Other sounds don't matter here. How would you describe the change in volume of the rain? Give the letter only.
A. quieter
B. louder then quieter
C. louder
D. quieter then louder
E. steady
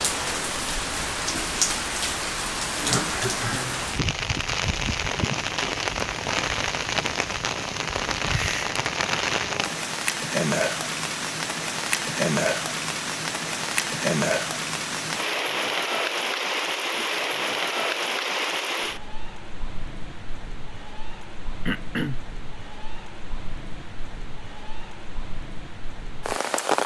A.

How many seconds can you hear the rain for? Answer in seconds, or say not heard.
27 s.